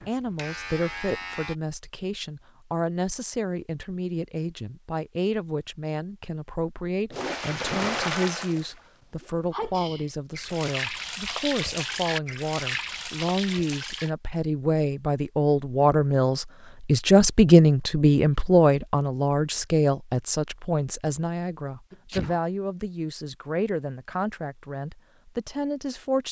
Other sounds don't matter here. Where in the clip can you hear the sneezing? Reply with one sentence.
You can hear the sneezing from 9.5 to 10.2 s and from 21.9 to 22.4 s.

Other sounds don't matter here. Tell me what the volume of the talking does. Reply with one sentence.
The loudness of the talking goes up, then down.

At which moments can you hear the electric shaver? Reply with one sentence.
You can hear the electric shaver from 0.0 to 1.6 s.